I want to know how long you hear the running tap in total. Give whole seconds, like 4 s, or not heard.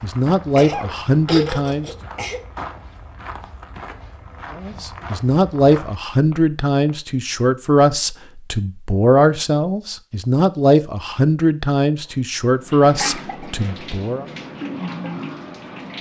3 s.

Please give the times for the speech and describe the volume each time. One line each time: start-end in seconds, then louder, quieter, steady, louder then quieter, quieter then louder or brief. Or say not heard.
0.0-1.9 brief
4.5-14.2 steady.